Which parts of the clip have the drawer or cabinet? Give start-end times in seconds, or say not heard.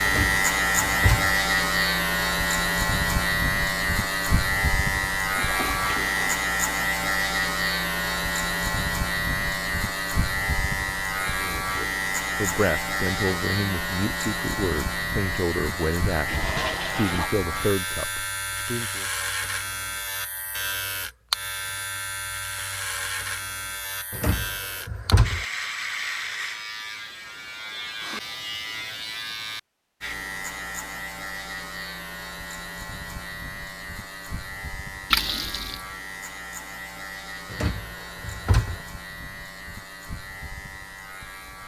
0.1-1.4, 24.1-25.4, 37.5-38.8.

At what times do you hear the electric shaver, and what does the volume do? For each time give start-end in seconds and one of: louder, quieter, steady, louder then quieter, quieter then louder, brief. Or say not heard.
0.0-41.6 quieter.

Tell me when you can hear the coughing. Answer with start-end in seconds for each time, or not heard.
not heard.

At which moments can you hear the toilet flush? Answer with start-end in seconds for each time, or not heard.
5.3-6.3, 16.2-17.3, 35.1-35.8.